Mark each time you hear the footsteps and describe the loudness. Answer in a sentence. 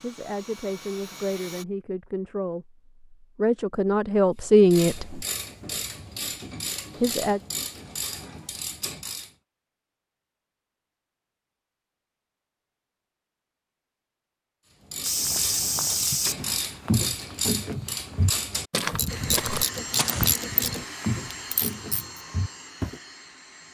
The footsteps can be heard from 15.0 to 23.0 s, getting quieter.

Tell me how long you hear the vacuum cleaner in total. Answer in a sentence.
You can hear the vacuum cleaner for 6 seconds altogether.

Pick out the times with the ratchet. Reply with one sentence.
You can hear the ratchet from 4.4 to 9.3 s and from 14.8 to 22.2 s.